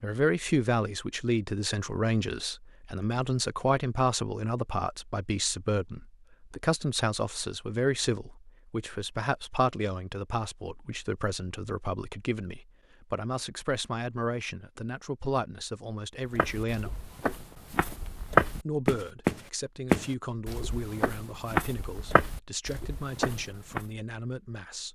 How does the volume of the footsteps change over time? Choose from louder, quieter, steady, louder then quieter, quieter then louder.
louder then quieter.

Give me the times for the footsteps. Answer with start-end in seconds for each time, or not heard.
16.2-23.9.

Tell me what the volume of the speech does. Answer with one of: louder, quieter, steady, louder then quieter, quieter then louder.
quieter.